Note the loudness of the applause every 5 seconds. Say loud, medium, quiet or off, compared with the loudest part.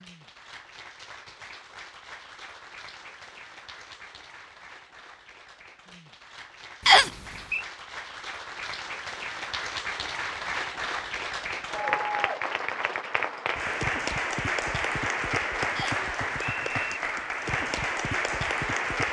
quiet, medium, loud, loud.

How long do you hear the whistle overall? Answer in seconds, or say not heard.
2 s.